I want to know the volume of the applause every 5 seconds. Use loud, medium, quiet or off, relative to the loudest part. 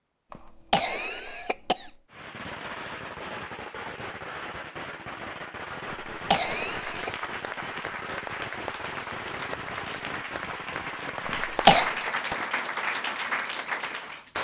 off, medium, loud.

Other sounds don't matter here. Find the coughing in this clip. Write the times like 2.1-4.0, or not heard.
0.3-1.9, 5.8-7.1, 11.2-11.9.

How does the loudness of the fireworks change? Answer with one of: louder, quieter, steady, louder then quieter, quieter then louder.
steady.